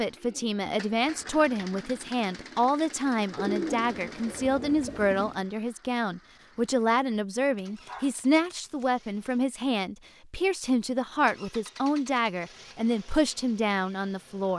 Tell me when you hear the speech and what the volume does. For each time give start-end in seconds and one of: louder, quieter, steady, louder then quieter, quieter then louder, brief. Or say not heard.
0.0-14.5 steady.